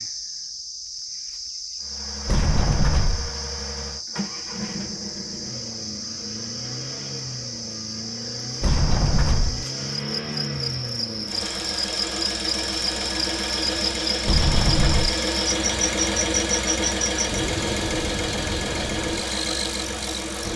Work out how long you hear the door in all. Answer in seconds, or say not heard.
3 s.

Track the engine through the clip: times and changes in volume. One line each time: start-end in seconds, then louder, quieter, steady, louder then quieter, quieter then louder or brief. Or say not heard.
1.8-20.5 louder.